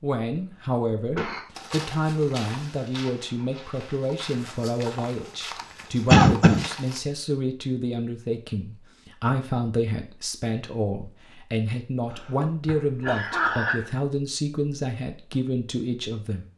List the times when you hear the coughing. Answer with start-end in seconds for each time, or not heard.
0.2-1.4, 6.1-6.7, 12.1-13.8.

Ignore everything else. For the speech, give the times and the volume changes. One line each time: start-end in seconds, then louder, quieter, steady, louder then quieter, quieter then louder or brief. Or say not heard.
0.0-16.4 steady.